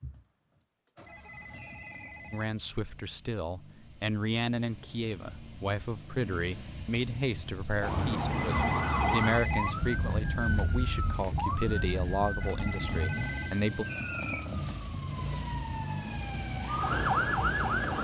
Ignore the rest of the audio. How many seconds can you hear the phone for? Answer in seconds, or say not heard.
4 s.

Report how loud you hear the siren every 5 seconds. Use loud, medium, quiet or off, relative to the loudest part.
off, loud, medium, loud.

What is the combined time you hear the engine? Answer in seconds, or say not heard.
18 s.